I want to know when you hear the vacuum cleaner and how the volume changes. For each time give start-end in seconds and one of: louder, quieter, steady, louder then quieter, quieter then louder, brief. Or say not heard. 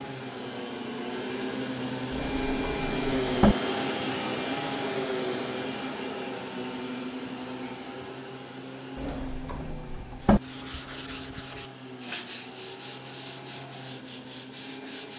0.0-15.1 quieter.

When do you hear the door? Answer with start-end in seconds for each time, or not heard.
2.1-3.5, 8.9-10.4.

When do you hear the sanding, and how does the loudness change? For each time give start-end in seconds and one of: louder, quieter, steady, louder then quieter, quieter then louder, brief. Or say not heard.
10.2-15.1 steady.